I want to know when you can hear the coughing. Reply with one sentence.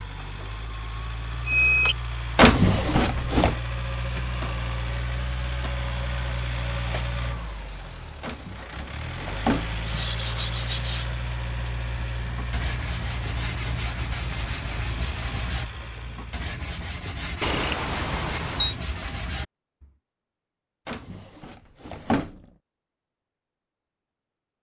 You can't hear the coughing here.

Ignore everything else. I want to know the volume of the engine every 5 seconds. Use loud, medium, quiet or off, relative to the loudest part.
loud, loud, loud, medium, off.